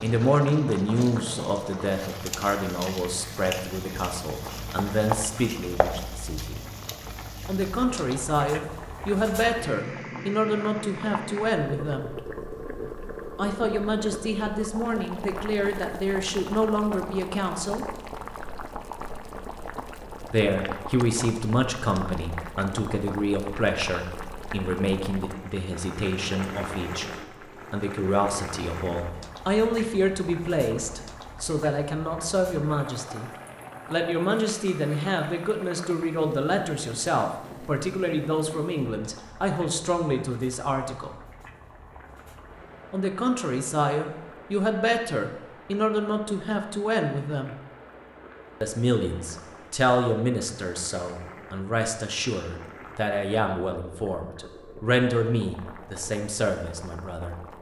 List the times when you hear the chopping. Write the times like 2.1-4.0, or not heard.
4.4-6.0.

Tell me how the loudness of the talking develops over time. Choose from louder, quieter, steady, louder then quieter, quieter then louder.
steady.